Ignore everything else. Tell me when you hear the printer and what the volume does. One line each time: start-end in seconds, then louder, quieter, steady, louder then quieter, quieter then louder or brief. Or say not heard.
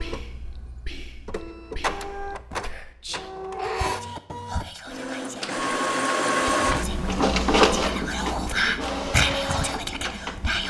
0.0-10.6 louder then quieter.